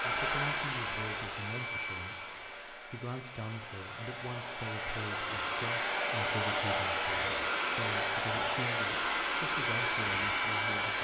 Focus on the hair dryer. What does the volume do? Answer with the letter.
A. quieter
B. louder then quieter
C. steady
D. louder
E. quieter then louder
E.